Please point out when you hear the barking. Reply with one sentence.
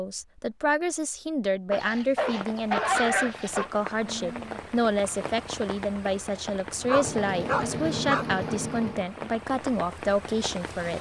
The barking can be heard from 1.7 to 3.7 s and from 6.8 to 8.2 s.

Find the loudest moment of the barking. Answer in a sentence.
The loudest moment of the barking is at 3 seconds.